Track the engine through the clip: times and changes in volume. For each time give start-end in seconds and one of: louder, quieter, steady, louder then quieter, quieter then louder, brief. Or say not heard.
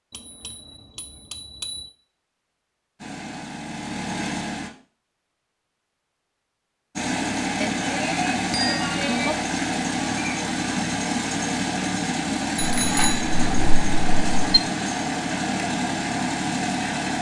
3.0-4.7 brief
7.0-17.1 steady.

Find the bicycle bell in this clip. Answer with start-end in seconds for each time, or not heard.
0.1-1.9, 7.6-9.3, 12.6-14.6.